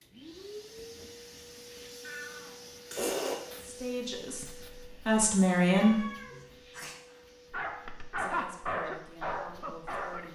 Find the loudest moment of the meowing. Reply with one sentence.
The loudest moment of the meowing is at 3 seconds.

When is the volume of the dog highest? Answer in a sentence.
The volume of the dog peaks at 8 seconds.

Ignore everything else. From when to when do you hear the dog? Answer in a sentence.
You can hear the dog from 7.1 to 10.3 s.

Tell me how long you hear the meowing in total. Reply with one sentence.
The meowing can be heard for 3 seconds in total.